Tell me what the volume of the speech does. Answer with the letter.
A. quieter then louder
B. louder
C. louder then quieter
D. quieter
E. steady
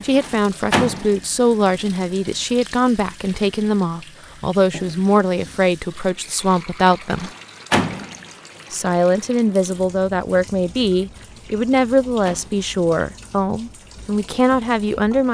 E.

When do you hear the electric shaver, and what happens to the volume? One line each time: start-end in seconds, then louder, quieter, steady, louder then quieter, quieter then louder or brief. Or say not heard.
not heard.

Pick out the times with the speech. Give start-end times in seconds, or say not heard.
0.0-7.3, 8.7-15.2.